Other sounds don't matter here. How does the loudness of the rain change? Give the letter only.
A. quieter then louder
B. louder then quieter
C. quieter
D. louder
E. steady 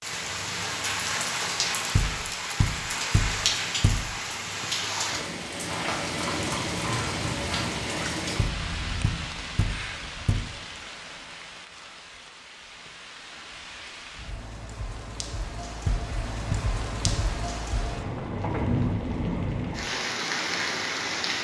A.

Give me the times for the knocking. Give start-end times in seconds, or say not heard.
1.9-4.2, 8.3-10.5, 15.8-17.8.